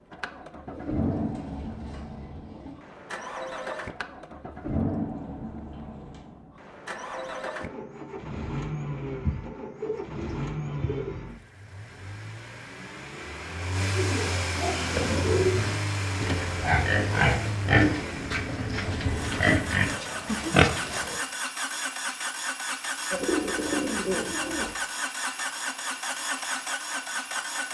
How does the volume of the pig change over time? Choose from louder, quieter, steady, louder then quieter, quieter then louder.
louder.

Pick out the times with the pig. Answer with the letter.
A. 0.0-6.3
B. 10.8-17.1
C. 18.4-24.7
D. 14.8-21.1
D.